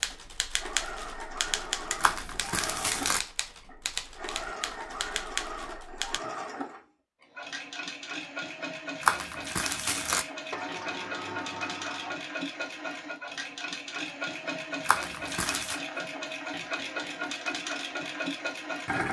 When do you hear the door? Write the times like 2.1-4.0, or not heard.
1.4-1.9, 10.5-12.2.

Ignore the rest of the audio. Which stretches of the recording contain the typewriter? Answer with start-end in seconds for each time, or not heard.
0.0-6.2.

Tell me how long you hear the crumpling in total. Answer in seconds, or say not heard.
3 s.